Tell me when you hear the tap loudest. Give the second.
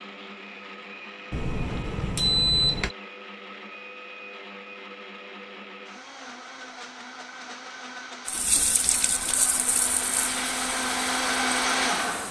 9 s.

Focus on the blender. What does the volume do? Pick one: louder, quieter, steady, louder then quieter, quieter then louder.
louder.